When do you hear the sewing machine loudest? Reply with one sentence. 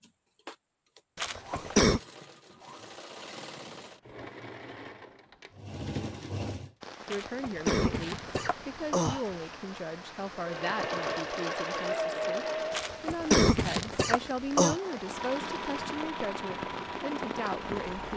The loudest moment of the sewing machine is at 12 seconds.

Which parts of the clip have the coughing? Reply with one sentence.
The coughing can be heard from 1.1 to 2.0 s, from 7.0 to 9.3 s and from 12.7 to 14.8 s.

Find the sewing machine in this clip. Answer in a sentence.
The sewing machine can be heard from 0.0 to 6.8 s, from 10.3 to 13.1 s and from 14.8 to 18.1 s.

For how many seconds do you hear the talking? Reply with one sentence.
You can hear the talking for 11 seconds altogether.